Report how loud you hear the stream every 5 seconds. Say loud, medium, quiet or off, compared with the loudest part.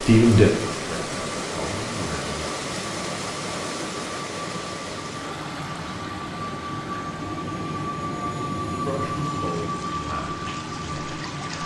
loud, medium, medium.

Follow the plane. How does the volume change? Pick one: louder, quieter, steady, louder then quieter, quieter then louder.
louder.